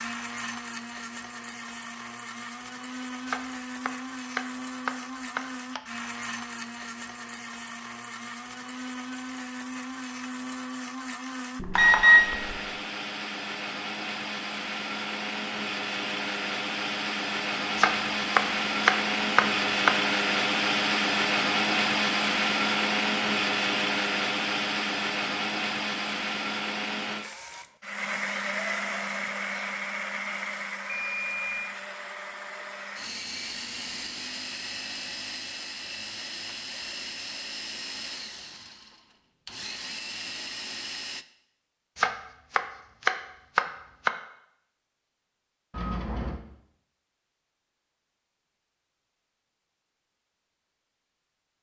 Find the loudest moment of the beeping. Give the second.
12 s.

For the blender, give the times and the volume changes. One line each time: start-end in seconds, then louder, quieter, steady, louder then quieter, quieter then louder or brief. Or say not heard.
0.0-41.2 louder then quieter.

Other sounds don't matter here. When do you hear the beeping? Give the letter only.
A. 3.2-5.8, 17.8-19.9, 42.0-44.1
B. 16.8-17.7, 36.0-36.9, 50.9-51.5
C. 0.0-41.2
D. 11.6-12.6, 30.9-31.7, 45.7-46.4
D.